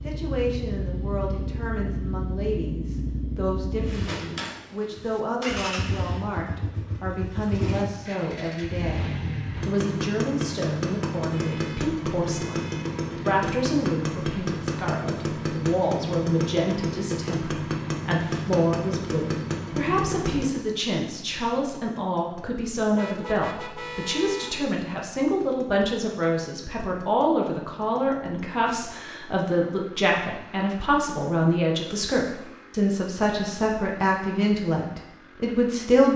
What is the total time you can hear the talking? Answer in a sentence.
You can hear the talking for 36 seconds altogether.